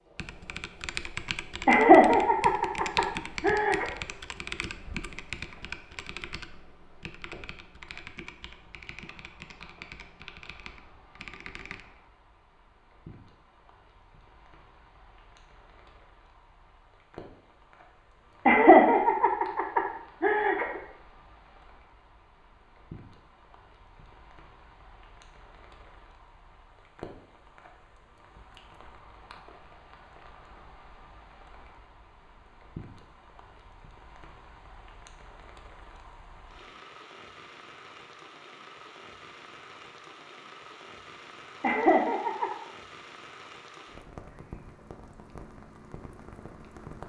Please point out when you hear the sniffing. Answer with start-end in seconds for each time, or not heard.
not heard.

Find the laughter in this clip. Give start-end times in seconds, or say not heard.
1.6-3.9, 18.4-20.8, 41.6-42.5.